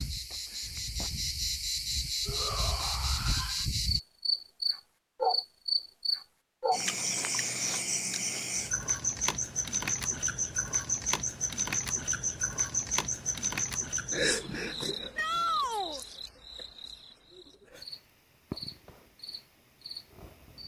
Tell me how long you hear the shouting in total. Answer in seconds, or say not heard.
2 s.